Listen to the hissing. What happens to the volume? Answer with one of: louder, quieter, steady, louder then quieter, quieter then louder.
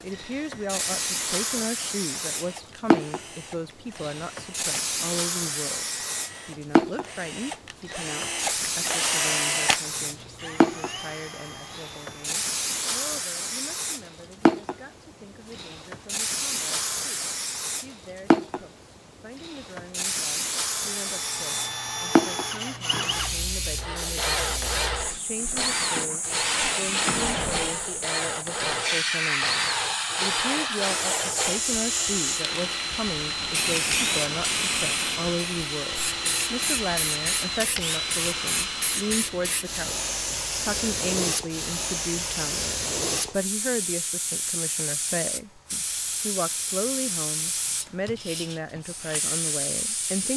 steady.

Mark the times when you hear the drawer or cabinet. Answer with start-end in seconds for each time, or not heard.
not heard.